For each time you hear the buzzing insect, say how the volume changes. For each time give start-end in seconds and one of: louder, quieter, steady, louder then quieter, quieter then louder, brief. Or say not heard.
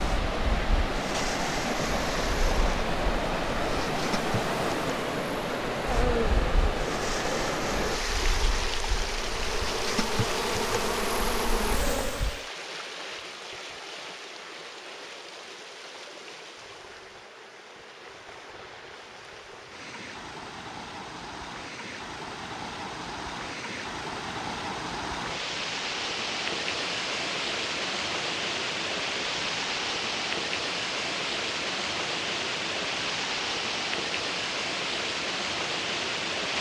0.0-12.4 louder.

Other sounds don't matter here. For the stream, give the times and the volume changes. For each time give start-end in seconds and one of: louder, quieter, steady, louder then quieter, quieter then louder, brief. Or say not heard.
0.0-36.5 quieter then louder.